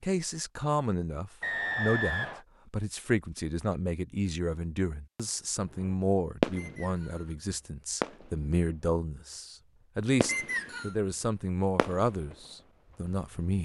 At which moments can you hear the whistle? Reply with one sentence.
The whistle can be heard from 1.4 to 2.4 s, from 6.5 to 7.3 s and from 10.2 to 10.9 s.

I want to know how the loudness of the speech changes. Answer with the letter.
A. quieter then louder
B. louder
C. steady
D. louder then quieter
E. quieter
C.